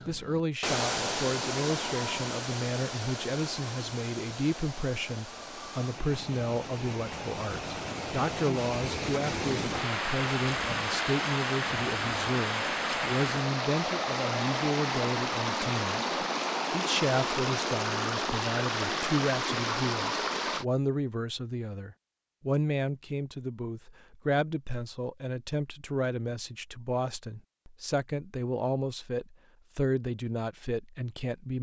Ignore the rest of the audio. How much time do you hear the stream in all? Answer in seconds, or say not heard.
21 s.